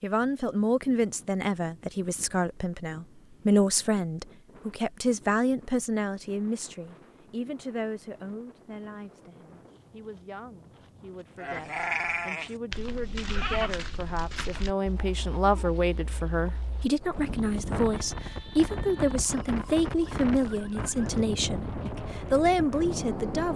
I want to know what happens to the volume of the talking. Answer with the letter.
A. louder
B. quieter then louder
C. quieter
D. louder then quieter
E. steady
B.